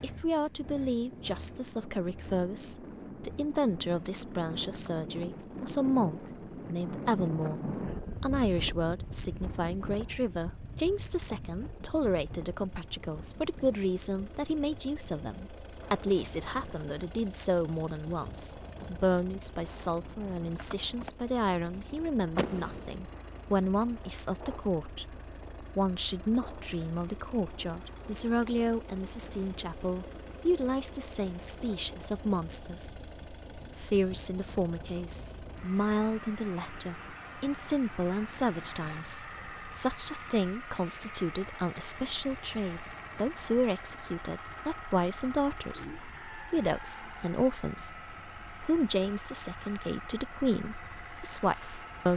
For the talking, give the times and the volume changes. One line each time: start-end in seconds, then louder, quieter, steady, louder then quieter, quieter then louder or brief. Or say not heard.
0.0-52.1 steady.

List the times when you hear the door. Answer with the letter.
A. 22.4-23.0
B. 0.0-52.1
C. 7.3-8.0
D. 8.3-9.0
A.